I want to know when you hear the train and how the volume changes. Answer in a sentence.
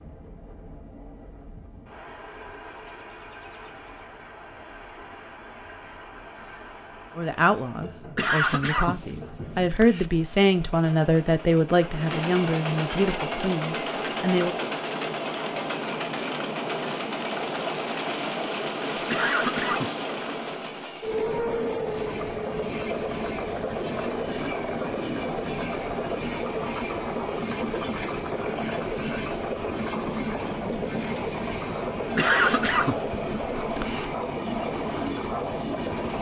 The train can be heard from 0.0 to 36.1 s, getting louder.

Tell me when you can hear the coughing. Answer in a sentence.
The coughing can be heard from 8.2 to 10.1 s, from 19.1 to 19.9 s and from 32.1 to 34.0 s.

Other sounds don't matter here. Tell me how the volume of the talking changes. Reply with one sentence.
The loudness of the talking goes up, then down.